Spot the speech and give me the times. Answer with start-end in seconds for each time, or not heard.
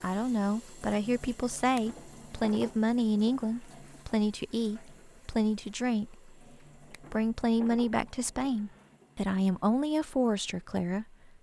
0.0-11.3.